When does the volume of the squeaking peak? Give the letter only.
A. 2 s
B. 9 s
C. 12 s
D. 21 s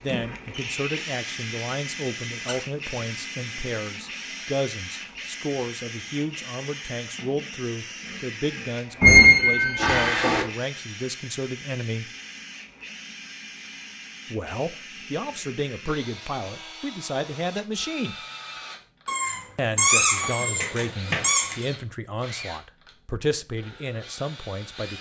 B.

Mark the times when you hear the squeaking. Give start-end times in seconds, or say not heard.
9.0-10.4, 19.1-21.6.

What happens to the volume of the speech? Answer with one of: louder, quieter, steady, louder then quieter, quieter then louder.
steady.